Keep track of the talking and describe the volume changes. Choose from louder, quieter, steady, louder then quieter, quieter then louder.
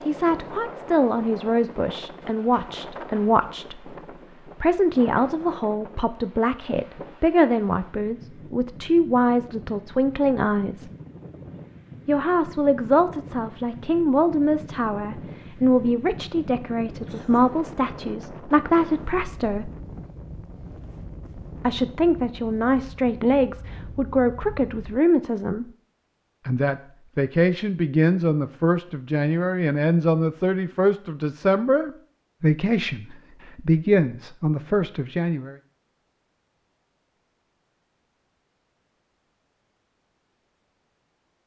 steady.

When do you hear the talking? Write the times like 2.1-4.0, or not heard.
0.1-10.9, 12.1-19.7, 21.6-25.7, 26.4-35.5.